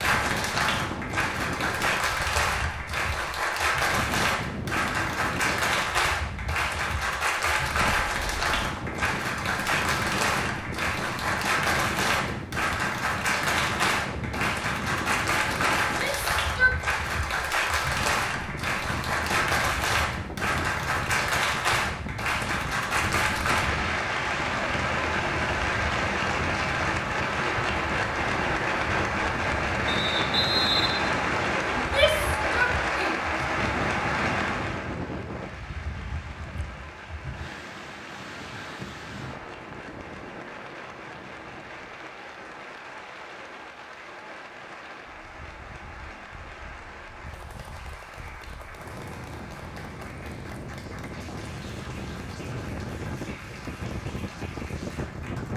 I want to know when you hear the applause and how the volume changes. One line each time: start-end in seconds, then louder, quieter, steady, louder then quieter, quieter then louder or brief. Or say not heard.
0.0-55.5 quieter.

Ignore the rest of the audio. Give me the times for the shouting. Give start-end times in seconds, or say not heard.
15.8-16.8, 31.8-33.2.